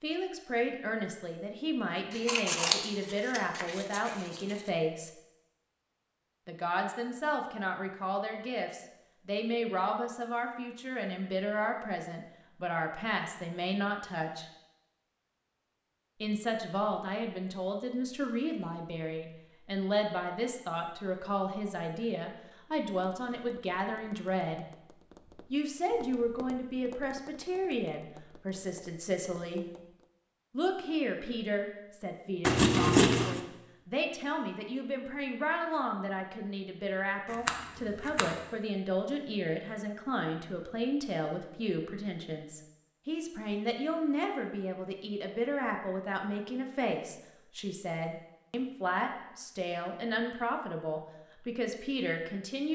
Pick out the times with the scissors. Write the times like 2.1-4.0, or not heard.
2.1-4.4, 32.4-33.4, 37.3-38.2.